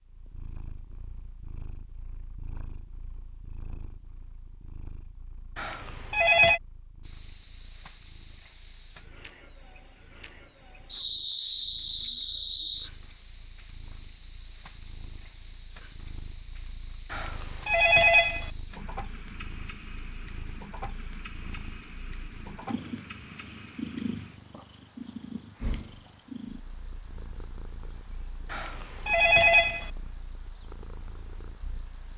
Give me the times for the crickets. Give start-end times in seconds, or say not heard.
7.0-32.1.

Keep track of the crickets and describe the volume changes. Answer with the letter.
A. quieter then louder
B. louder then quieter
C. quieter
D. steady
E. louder
D.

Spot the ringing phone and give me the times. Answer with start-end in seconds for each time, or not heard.
5.5-6.6, 17.1-18.5, 28.5-29.9.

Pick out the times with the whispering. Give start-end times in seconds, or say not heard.
not heard.